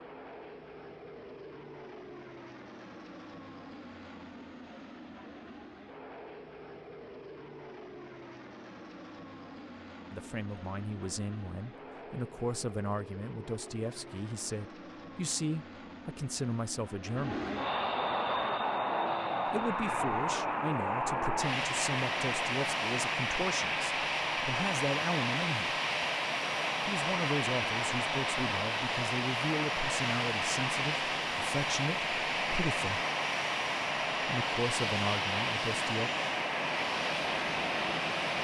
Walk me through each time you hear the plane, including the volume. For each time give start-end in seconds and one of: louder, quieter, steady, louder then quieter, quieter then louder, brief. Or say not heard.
0.0-38.3 louder.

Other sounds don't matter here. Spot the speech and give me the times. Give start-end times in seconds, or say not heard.
10.1-17.4, 19.4-25.8, 26.9-33.0, 34.2-36.1.